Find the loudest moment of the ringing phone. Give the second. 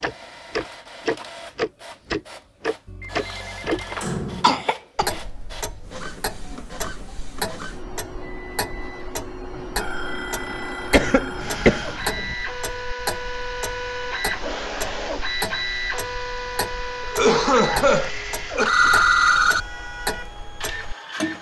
19 s.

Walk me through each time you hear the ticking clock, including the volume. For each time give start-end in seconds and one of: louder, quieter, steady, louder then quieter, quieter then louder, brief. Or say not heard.
0.0-21.3 quieter.